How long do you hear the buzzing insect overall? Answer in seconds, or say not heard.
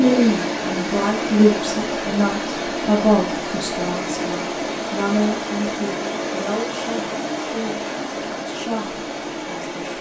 not heard.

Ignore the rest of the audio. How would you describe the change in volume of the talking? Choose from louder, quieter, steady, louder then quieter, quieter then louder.
quieter.